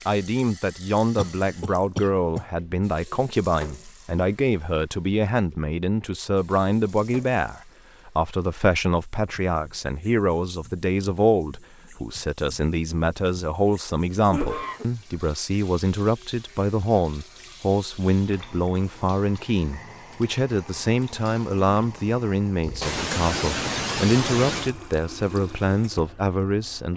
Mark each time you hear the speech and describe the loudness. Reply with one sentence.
The speech can be heard from 0.1 to 26.9 s, at a steady volume.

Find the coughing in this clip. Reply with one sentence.
You can hear the coughing from 1.1 to 2.5 s, from 14.2 to 14.8 s and from 22.8 to 24.7 s.